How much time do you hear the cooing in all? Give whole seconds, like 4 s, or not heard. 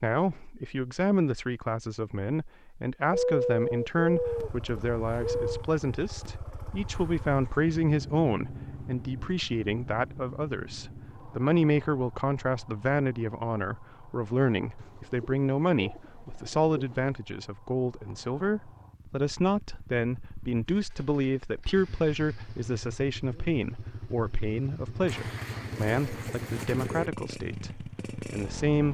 7 s.